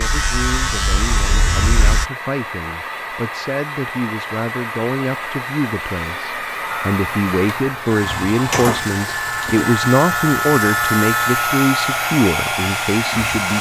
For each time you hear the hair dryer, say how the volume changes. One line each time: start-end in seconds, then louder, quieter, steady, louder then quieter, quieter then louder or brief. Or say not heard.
0.0-13.5 louder.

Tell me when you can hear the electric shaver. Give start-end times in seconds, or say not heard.
0.0-2.0, 6.7-13.5.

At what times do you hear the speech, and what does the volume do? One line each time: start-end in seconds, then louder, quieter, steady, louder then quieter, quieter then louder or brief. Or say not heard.
0.0-13.5 louder.